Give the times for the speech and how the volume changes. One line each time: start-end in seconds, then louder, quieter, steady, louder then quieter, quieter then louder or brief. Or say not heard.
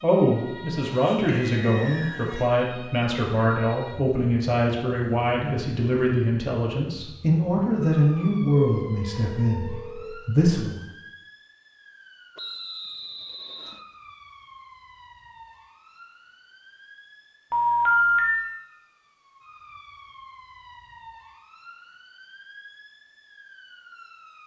0.0-10.8 steady.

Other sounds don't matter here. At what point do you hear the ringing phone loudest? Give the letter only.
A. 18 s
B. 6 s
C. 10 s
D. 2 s
A.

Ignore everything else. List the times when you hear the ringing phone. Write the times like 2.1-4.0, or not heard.
0.8-2.5, 8.7-10.1, 17.5-18.4.